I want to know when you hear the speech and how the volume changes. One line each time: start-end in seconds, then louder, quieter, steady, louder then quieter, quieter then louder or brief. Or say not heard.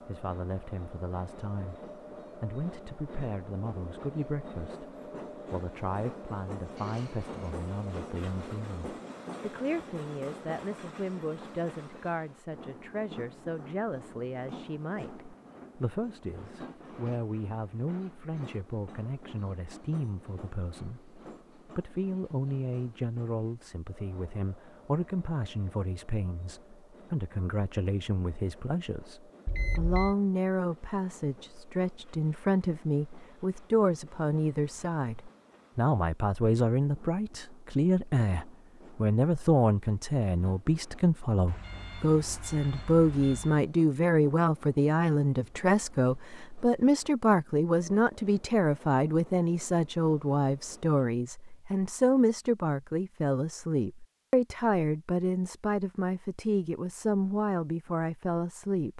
0.0-58.9 louder.